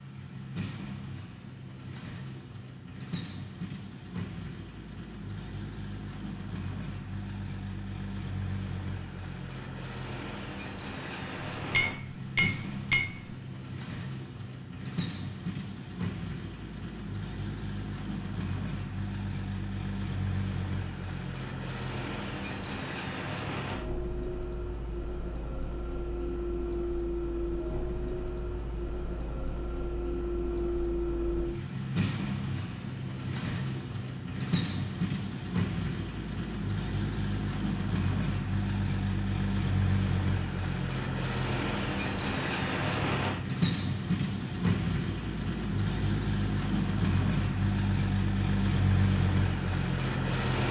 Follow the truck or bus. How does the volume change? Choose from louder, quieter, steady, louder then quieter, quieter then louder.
louder.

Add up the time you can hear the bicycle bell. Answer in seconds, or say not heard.
2 s.